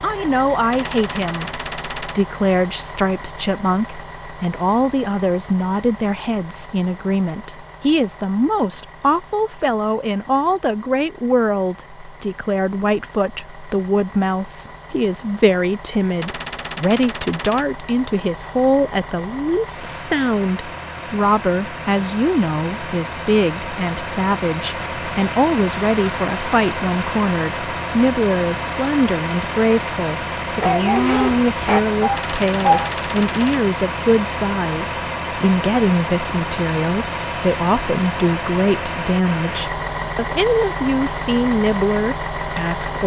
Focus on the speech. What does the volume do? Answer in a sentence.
The volume of the speech stays about the same.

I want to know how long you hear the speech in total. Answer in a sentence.
The speech can be heard for 43 seconds in total.